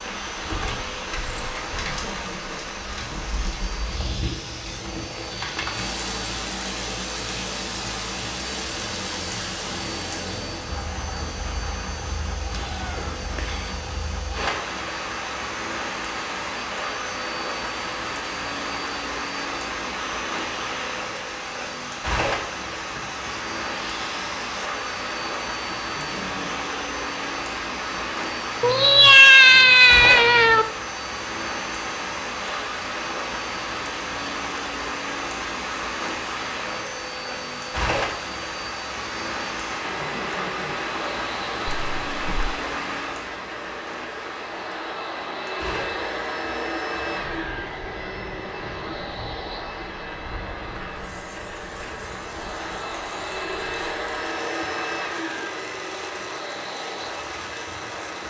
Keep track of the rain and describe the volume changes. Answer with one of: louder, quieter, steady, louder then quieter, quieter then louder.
quieter.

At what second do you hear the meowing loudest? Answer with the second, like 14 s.
29 s.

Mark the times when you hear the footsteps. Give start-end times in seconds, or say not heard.
not heard.